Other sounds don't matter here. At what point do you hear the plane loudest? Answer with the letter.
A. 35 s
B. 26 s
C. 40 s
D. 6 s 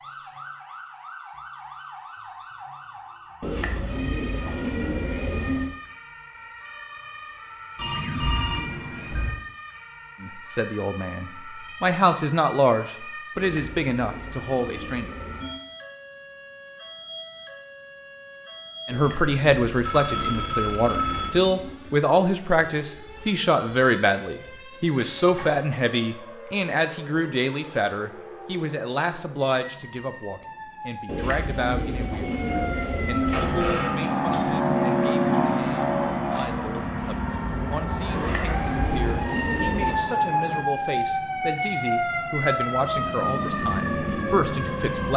A.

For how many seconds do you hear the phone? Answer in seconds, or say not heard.
4 s.